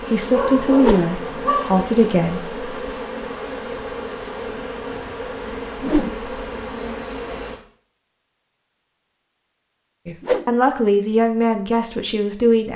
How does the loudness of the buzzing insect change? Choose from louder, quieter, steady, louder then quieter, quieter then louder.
steady.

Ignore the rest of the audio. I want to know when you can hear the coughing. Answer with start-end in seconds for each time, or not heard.
not heard.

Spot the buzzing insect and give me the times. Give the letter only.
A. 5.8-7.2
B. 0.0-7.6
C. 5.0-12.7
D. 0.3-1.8
B.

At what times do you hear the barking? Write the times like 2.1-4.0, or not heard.
0.3-1.8.